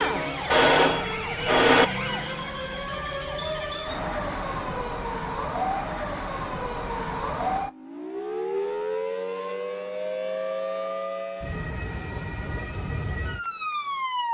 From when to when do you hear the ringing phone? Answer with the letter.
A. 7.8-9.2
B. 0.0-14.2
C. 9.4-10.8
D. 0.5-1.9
D.